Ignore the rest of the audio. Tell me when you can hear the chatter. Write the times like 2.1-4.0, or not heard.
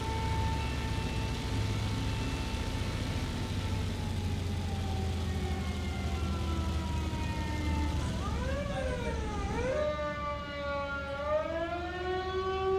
not heard.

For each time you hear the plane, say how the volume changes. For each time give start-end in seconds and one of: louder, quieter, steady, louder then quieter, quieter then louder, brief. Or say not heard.
0.0-12.7 quieter.